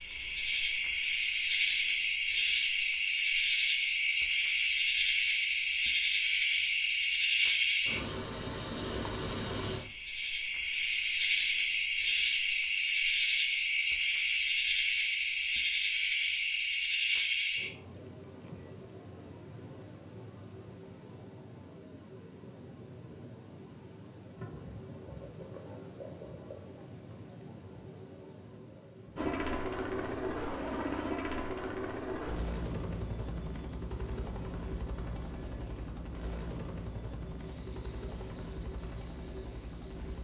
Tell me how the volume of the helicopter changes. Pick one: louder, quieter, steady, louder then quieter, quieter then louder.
quieter.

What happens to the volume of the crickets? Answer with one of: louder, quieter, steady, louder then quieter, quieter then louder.
quieter.